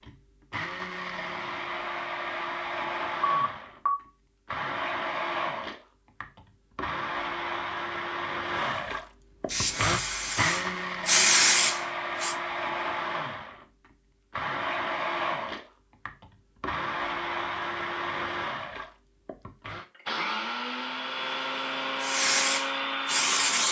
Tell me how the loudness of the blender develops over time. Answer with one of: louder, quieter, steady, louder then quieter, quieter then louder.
steady.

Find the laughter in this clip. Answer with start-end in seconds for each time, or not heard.
not heard.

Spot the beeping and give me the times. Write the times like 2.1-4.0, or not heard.
3.2-4.0.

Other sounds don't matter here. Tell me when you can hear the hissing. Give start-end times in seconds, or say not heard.
9.5-12.3, 22.0-23.6.